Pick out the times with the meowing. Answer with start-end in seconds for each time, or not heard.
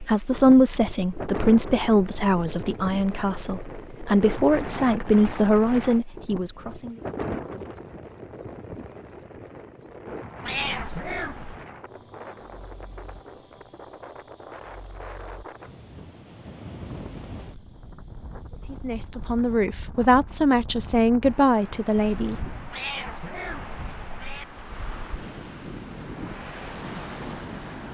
10.4-11.7, 22.7-24.4.